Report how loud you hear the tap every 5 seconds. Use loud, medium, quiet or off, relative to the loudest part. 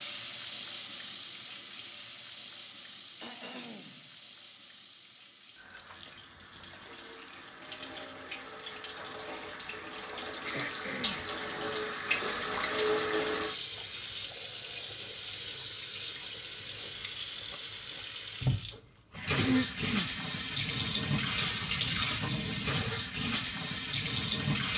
medium, quiet, loud, loud, loud.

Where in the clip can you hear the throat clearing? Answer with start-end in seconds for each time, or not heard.
3.2-4.1, 10.4-11.2, 19.4-20.1.